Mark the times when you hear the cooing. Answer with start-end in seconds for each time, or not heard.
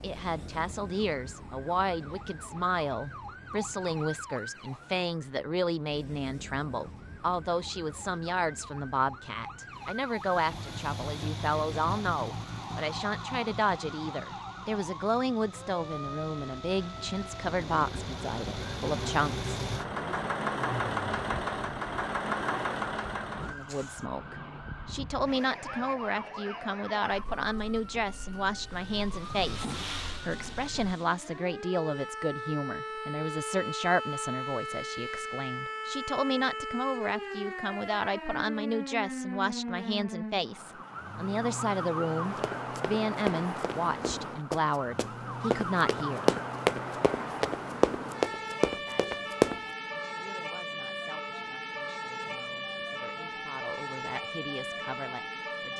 not heard.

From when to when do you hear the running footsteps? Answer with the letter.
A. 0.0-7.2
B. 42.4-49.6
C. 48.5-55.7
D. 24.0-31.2
B.